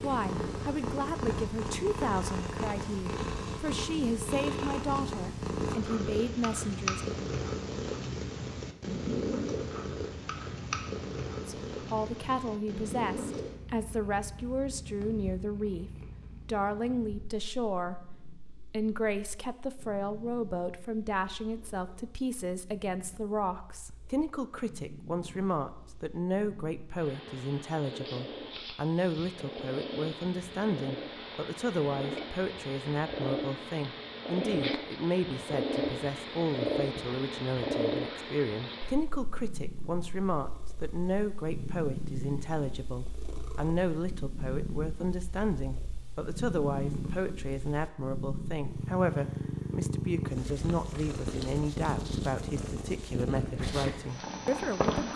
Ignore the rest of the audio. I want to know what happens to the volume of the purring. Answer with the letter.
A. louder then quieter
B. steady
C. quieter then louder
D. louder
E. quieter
C.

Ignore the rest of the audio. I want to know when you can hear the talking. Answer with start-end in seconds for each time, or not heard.
0.0-7.2, 11.4-17.9, 18.6-55.1.